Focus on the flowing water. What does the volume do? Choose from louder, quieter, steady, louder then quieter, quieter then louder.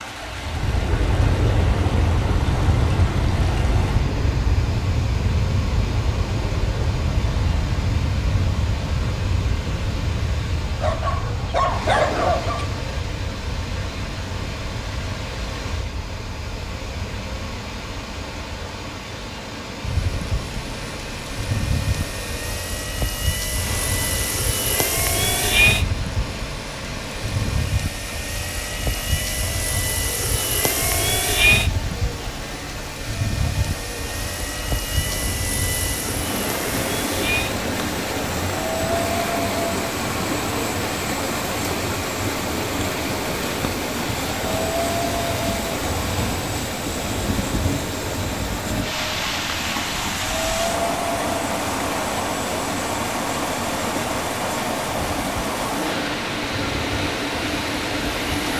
louder.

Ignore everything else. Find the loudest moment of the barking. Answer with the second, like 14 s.
12 s.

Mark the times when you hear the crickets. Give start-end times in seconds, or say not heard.
not heard.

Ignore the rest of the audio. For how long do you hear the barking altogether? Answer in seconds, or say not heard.
2 s.